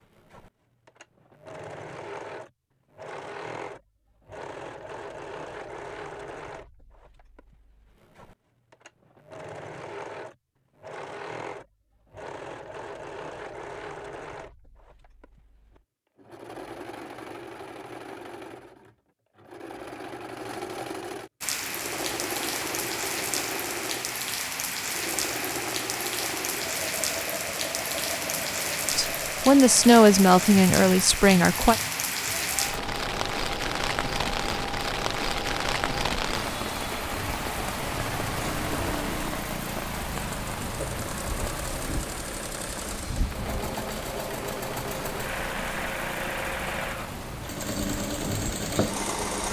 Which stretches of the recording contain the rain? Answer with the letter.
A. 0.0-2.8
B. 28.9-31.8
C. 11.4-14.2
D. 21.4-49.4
D.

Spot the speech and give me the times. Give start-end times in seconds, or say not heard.
28.9-31.8.